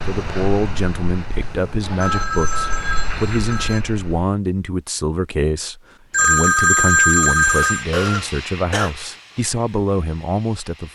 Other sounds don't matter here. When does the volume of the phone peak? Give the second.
7 s.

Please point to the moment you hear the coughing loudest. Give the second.
8 s.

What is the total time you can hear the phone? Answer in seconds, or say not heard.
4 s.